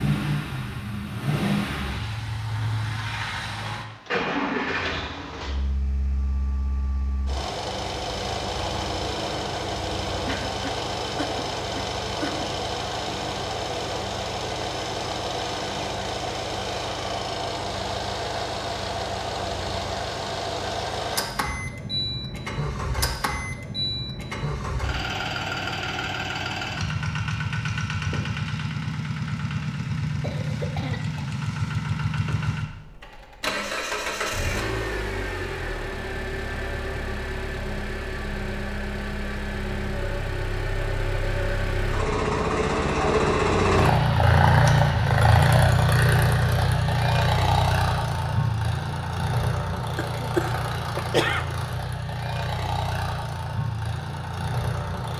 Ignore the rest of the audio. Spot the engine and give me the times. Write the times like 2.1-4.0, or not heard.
0.0-55.1.